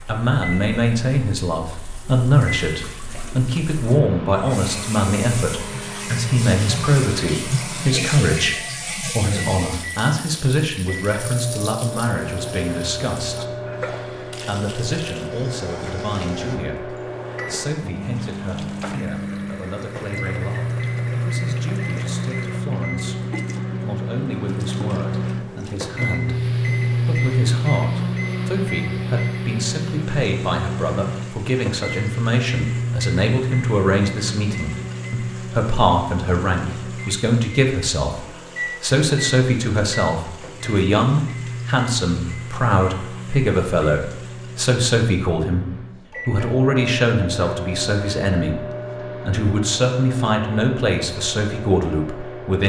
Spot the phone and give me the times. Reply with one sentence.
The phone can't be heard in this clip.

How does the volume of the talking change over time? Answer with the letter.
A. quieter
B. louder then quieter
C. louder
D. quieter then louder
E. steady
D.